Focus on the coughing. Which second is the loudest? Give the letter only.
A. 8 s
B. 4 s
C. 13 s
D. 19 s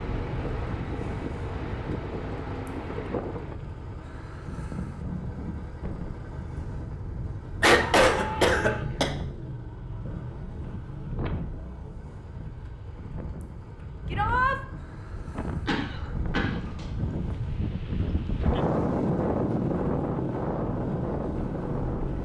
A.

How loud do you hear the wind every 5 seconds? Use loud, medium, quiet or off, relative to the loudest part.
medium, medium, medium, loud, loud.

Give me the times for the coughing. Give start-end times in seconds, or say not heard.
7.6-9.1, 15.7-17.1.